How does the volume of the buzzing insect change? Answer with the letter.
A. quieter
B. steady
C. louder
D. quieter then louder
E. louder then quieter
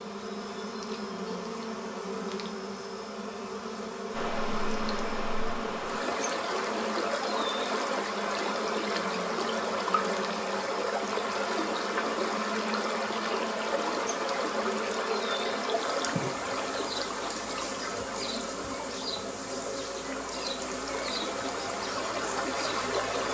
B.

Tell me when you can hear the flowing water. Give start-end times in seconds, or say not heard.
4.1-23.3.